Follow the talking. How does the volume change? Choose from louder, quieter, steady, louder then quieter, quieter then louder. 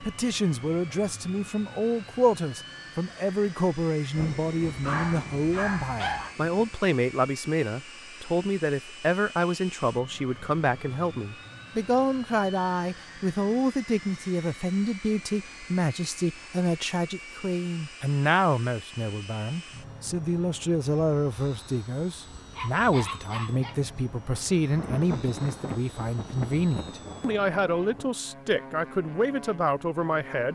steady.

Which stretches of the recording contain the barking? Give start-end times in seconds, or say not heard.
4.7-6.3, 22.5-24.0.